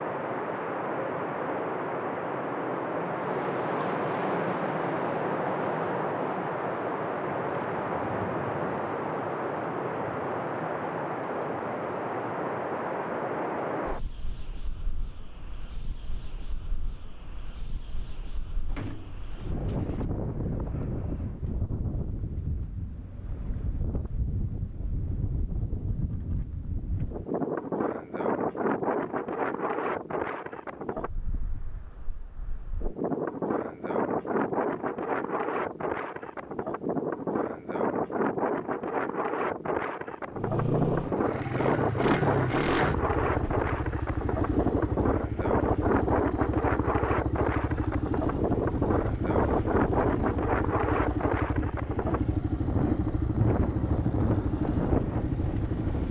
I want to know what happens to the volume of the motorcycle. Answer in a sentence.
The loudness of the motorcycle stays about the same.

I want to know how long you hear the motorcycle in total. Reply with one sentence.
The motorcycle can be heard for 16 seconds in total.